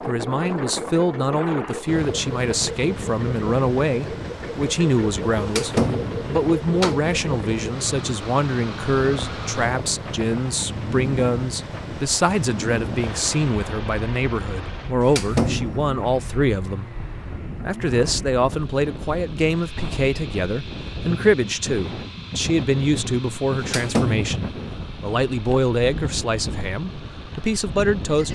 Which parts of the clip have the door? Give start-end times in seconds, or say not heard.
5.4-7.1, 15.0-15.9, 23.6-24.4.